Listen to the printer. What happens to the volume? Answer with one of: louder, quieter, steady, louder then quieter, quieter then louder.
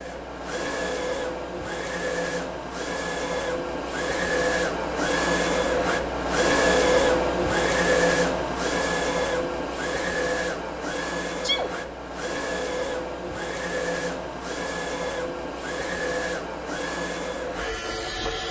louder then quieter.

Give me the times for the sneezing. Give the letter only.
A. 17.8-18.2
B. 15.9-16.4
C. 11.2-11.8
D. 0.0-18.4
C.